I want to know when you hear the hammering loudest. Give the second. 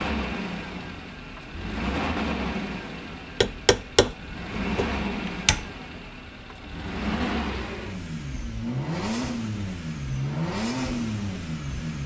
4 s.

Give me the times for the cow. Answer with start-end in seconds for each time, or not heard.
not heard.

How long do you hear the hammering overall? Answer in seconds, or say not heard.
2 s.